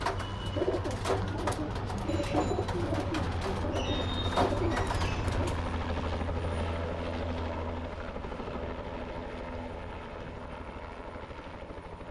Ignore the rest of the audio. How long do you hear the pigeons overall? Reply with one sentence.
The pigeons can be heard for 6 seconds in total.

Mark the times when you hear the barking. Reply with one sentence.
You can't hear the barking here.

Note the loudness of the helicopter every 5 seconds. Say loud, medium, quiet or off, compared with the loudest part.
loud, loud, medium.